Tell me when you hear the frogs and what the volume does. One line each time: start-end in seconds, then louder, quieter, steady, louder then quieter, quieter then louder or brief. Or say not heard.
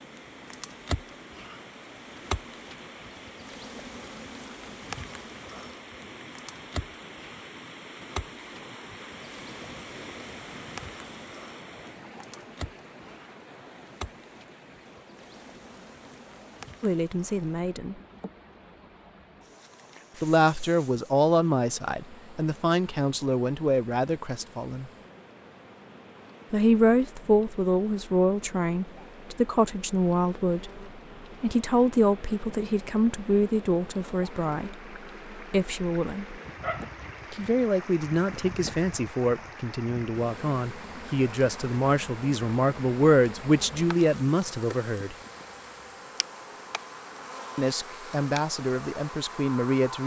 not heard.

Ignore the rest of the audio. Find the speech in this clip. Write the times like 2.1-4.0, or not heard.
16.8-17.9, 20.2-24.9, 26.5-36.4, 37.3-45.1, 47.5-50.0.